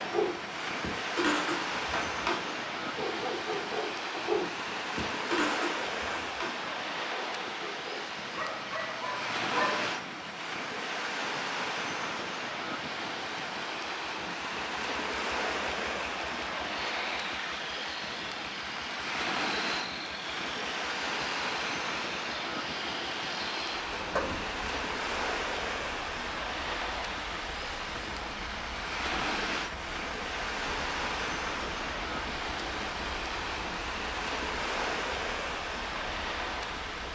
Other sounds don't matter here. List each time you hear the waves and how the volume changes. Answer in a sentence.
You can hear the waves from 0.0 to 37.1 s, at a steady volume.